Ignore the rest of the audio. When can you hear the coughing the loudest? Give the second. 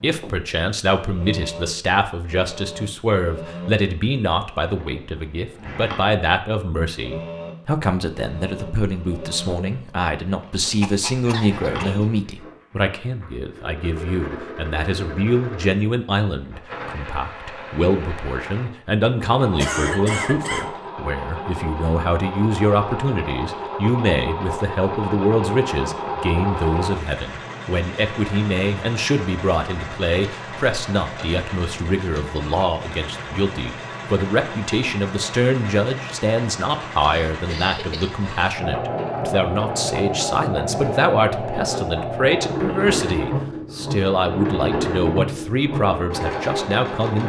20 s.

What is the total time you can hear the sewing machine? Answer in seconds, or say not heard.
47 s.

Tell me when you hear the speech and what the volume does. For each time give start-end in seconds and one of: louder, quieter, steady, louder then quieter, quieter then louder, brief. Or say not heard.
0.0-47.2 steady.